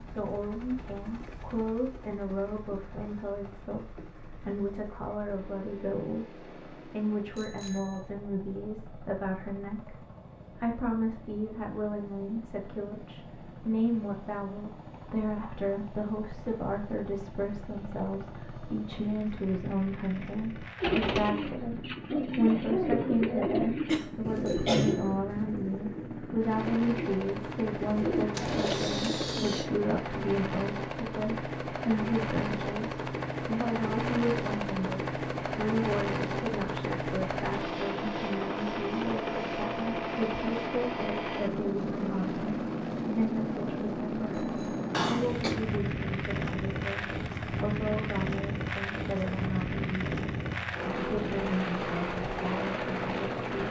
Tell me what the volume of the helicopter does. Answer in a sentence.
The loudness of the helicopter goes up.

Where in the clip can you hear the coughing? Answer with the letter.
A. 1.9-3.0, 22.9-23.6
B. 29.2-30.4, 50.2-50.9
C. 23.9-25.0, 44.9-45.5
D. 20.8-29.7
C.